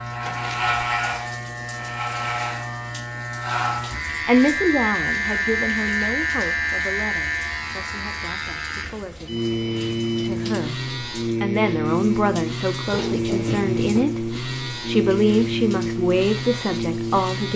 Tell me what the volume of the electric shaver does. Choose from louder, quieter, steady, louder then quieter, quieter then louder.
steady.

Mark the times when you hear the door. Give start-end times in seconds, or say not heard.
0.2-0.7, 12.9-14.1.